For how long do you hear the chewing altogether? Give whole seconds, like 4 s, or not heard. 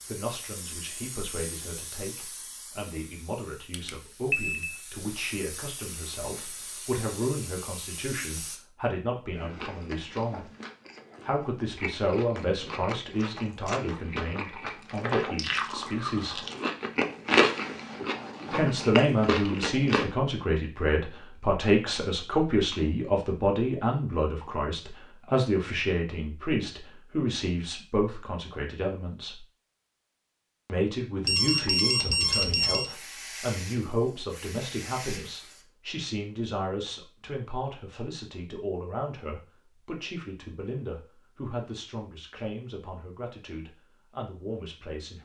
11 s.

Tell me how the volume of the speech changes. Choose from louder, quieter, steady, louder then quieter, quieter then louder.
louder then quieter.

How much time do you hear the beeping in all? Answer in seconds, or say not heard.
3 s.